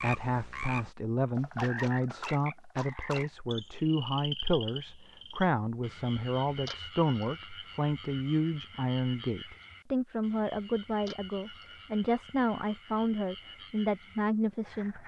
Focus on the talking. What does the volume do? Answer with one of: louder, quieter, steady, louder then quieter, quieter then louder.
steady.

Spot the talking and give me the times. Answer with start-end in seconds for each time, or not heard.
0.0-15.0.